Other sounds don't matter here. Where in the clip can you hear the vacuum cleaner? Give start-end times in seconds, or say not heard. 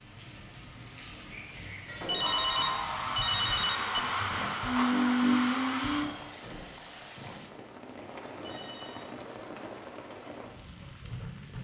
2.1-6.1.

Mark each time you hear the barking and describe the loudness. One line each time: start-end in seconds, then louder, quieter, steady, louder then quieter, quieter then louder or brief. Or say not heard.
not heard.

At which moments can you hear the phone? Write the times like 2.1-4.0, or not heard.
2.0-4.0, 8.3-9.0.